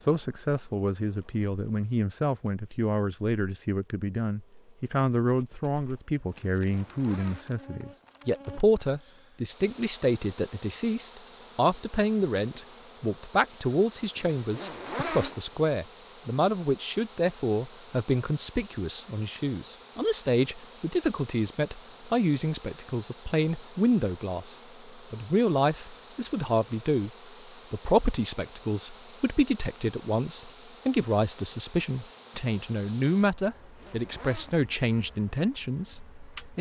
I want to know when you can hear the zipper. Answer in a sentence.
You can hear the zipper from 6.5 to 8.2 s, from 14.2 to 15.8 s and from 33.5 to 34.5 s.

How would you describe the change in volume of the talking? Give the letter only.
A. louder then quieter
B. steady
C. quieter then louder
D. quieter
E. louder
B.